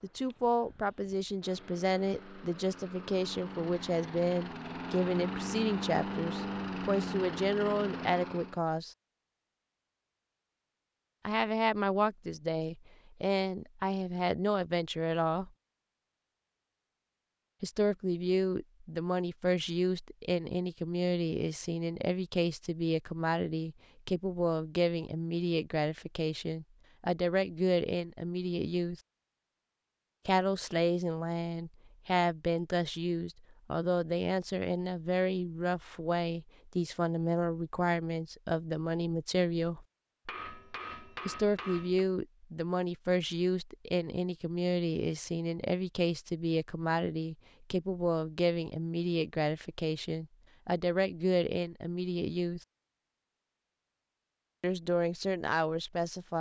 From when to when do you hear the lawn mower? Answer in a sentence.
The lawn mower can be heard from 0.0 to 8.6 s.